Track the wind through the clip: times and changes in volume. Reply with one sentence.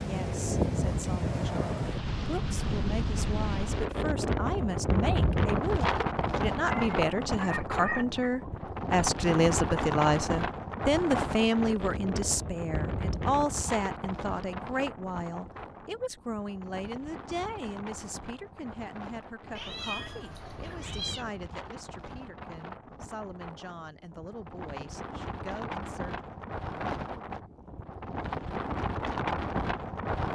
You can hear the wind from 0.0 to 30.3 s, getting quieter then louder.